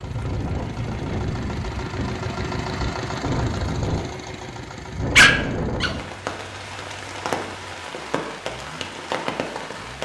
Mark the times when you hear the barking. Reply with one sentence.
The barking can be heard from 5.2 to 6.0 s.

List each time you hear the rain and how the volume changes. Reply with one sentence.
The rain can be heard from 0.0 to 9.9 s, at a steady volume.